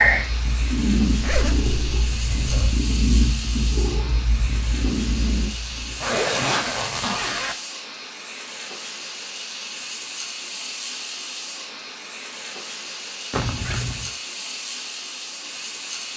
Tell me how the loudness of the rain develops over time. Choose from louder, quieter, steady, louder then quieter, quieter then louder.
steady.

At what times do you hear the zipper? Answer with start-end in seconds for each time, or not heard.
1.2-2.8, 6.0-7.5, 13.3-14.1.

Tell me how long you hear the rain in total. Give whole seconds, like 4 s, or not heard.
16 s.